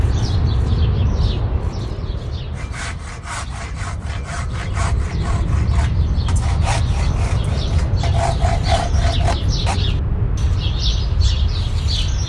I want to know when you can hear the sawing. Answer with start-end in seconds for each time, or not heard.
2.5-9.8.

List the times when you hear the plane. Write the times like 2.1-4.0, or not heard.
0.0-12.2.